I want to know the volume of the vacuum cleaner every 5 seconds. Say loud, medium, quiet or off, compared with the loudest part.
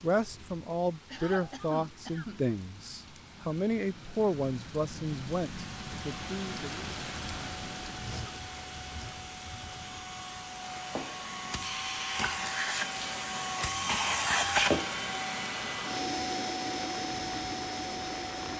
off, quiet, loud, loud.